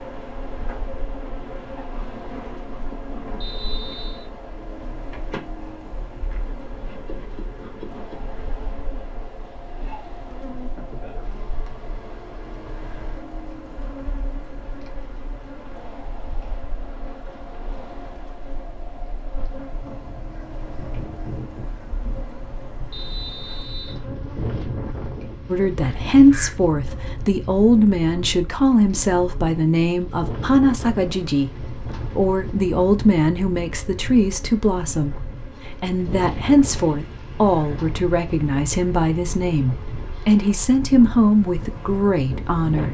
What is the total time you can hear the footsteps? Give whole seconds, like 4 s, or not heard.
not heard.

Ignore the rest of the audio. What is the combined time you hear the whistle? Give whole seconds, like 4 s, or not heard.
2 s.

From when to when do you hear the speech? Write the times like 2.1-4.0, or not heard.
25.5-42.8.